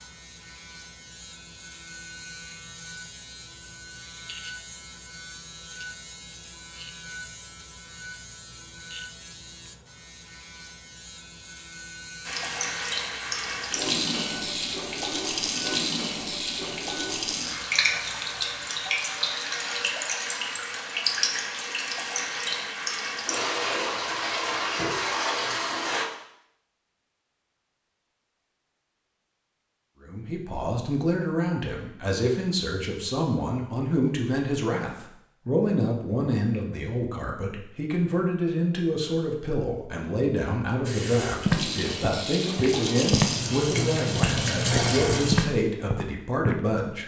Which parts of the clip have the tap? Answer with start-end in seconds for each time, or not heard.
12.2-26.1, 40.8-45.5.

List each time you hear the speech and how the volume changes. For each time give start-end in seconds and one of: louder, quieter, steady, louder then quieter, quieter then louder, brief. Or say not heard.
30.0-47.0 steady.